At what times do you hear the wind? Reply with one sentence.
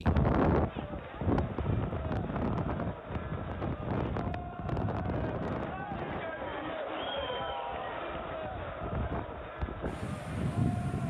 The wind can be heard from 0.0 to 11.0 s.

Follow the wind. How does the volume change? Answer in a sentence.
The loudness of the wind goes down, then up.